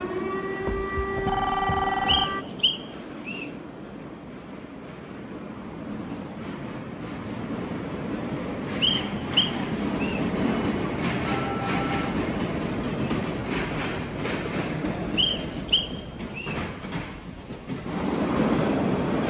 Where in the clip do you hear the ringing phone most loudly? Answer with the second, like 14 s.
2 s.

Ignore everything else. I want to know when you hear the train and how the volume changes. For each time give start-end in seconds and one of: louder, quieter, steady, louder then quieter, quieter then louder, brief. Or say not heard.
0.0-19.2 louder.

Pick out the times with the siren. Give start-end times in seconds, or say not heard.
0.0-2.5.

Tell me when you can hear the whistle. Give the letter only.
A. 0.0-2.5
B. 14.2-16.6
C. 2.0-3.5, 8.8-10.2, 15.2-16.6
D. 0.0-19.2
C.